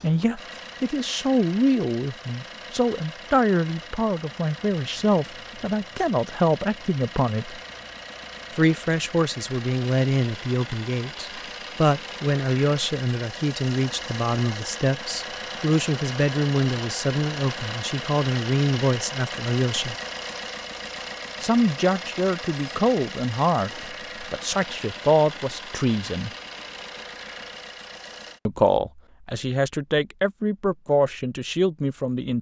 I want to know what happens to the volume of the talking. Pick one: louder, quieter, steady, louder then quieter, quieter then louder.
steady.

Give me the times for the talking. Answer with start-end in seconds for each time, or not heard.
0.0-7.6, 8.6-19.9, 21.4-26.3, 28.4-32.3.